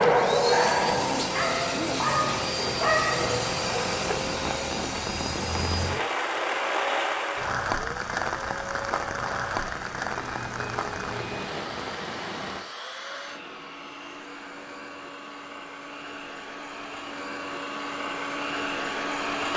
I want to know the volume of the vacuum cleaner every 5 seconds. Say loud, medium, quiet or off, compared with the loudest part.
loud, medium, medium, loud.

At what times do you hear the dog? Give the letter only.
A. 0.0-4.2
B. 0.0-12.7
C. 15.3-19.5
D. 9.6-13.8
A.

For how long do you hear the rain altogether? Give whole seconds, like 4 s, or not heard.
13 s.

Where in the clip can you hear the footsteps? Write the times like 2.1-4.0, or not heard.
not heard.